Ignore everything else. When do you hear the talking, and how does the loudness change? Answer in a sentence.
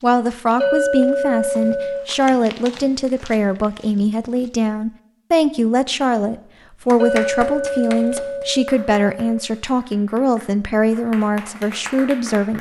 You can hear the talking from 0.0 to 12.5 s, at a steady volume.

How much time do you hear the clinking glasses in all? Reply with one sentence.
The clinking glasses can be heard for 4 seconds in total.